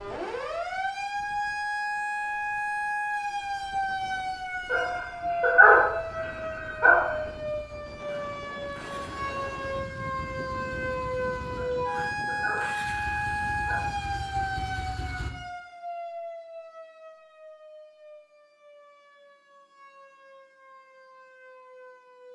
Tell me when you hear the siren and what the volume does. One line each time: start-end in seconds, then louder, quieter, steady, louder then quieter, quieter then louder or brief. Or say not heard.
0.0-22.3 quieter.